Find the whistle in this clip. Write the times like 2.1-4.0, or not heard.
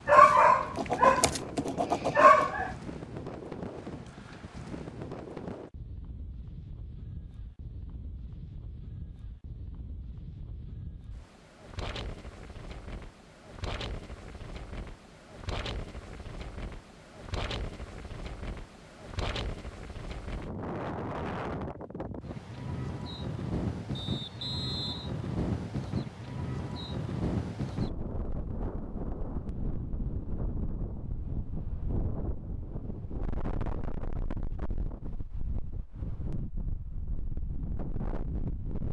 23.9-25.1.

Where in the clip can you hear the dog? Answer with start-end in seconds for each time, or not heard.
0.1-2.8.